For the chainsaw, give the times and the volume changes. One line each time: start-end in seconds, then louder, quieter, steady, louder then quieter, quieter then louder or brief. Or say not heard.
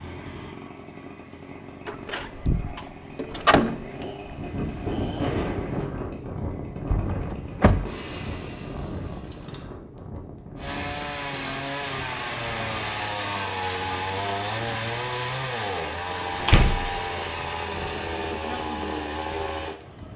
0.0-20.0 louder.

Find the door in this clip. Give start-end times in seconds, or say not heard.
1.9-4.3, 6.9-7.9, 16.2-16.9.